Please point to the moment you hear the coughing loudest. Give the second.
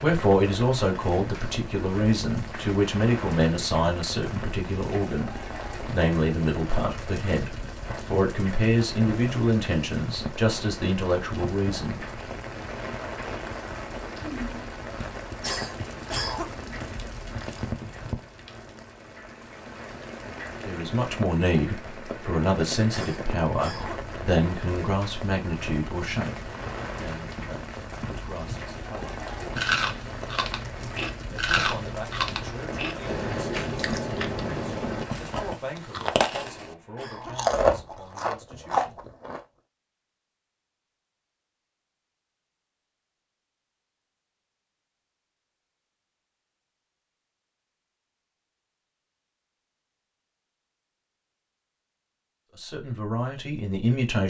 16 s.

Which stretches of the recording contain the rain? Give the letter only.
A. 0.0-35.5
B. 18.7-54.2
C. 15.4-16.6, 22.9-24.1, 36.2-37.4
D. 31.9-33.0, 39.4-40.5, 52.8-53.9
A.